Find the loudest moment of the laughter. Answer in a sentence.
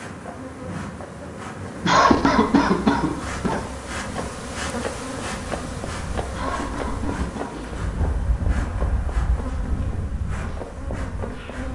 The loudest moment of the laughter is at 2 seconds.